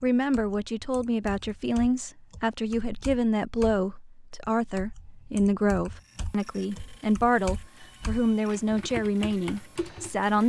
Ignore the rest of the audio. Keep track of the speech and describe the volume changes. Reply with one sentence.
The volume of the speech stays about the same.